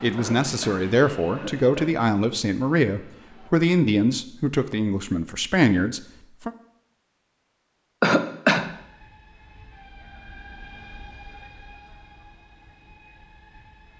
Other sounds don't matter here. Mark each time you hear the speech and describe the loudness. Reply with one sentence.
The speech can be heard from 0.0 to 6.5 s, at a steady volume.